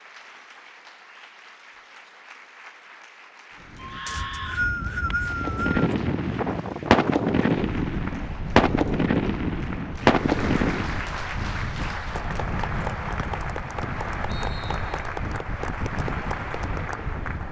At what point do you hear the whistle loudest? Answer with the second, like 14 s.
5 s.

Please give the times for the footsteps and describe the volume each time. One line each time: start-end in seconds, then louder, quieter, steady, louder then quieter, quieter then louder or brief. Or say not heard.
not heard.